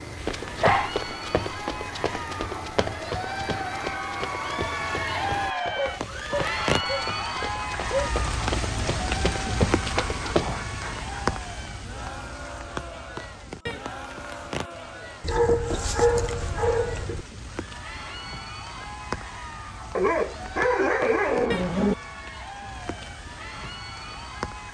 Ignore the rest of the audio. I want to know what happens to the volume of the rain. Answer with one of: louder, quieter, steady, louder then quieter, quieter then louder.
louder then quieter.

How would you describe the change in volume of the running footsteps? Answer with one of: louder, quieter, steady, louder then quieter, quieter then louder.
quieter then louder.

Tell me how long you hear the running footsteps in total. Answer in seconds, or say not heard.
10 s.